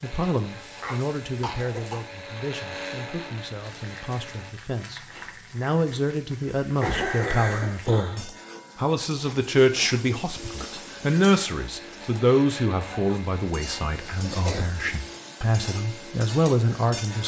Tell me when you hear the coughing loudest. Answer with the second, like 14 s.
7 s.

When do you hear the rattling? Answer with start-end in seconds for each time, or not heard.
5.0-5.5.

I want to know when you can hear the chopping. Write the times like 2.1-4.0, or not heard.
not heard.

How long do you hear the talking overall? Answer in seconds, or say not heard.
17 s.